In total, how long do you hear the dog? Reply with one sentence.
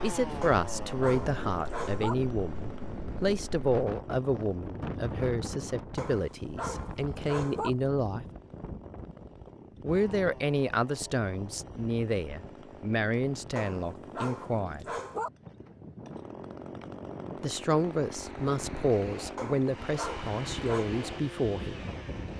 The dog can be heard for 7 seconds in total.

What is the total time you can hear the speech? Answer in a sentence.
The speech can be heard for 18 seconds in total.